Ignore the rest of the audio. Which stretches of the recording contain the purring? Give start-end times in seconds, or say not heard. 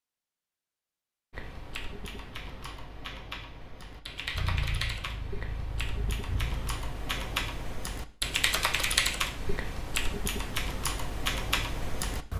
4.2-6.9.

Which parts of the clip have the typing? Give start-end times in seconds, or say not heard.
1.3-12.3.